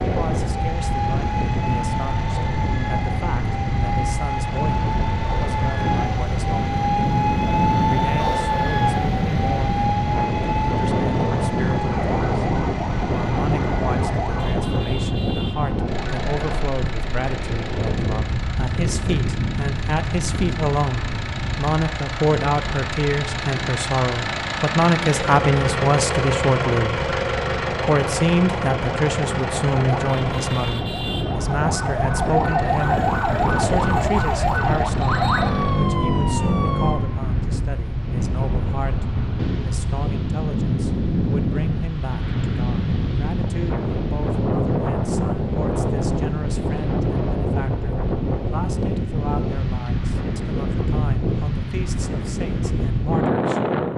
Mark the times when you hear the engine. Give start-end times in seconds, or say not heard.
0.0-35.9.